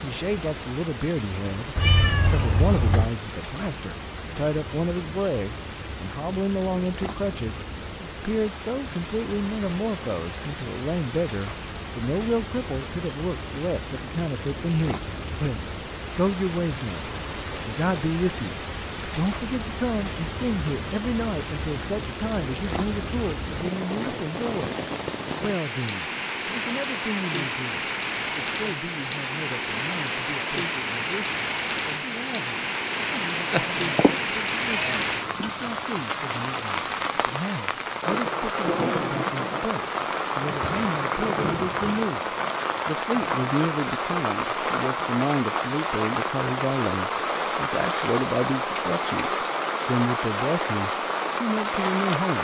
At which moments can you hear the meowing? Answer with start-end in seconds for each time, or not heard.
1.8-3.1, 33.5-35.5.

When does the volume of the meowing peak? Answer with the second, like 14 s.
2 s.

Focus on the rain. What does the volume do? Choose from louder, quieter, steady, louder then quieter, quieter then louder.
louder.